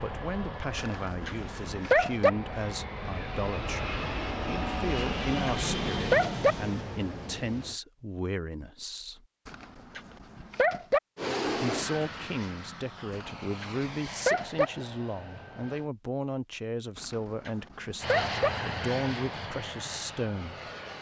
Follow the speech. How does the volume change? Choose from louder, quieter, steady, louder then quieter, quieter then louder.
steady.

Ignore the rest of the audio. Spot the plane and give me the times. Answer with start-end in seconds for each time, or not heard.
0.0-7.8, 11.2-15.9, 18.0-20.9.